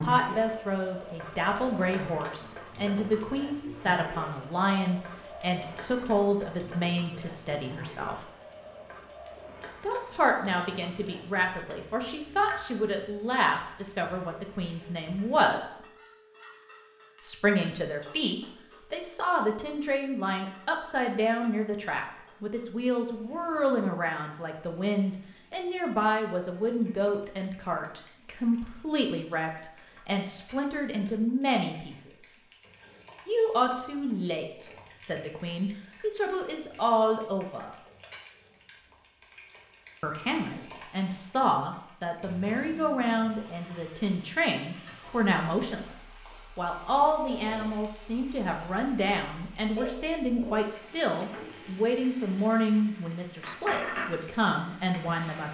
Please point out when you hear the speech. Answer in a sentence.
You can hear the speech from 0.0 to 8.2 s, from 9.8 to 15.8 s, from 17.2 to 32.4 s, from 33.2 to 37.8 s and from 40.0 to 55.5 s.